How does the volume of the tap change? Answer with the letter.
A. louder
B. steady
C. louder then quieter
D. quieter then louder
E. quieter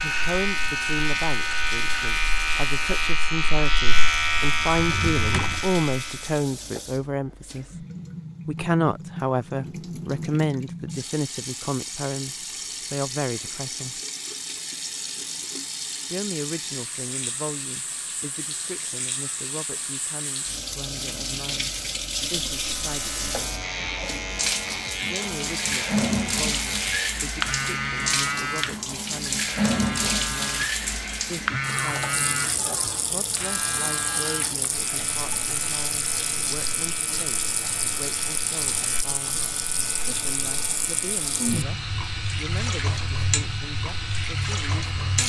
A.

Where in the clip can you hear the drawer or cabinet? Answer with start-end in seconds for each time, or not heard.
4.7-5.7.